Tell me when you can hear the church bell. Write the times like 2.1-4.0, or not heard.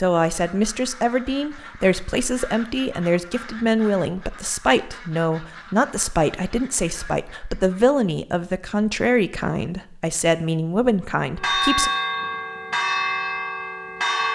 11.3-14.3.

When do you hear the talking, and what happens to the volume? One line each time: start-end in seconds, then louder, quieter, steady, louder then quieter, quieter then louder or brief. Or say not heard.
0.0-11.9 steady.